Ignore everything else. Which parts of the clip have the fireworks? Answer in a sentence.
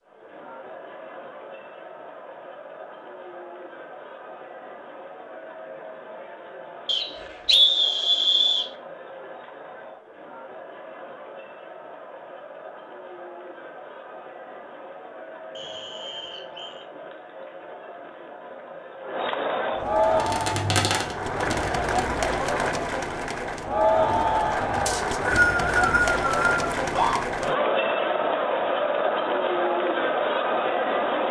You can hear the fireworks from 20.0 to 21.9 s.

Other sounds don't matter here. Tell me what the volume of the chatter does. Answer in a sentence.
The volume of the chatter goes up.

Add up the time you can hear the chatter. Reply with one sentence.
You can hear the chatter for 31 seconds altogether.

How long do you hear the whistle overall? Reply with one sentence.
The whistle can be heard for 5 seconds in total.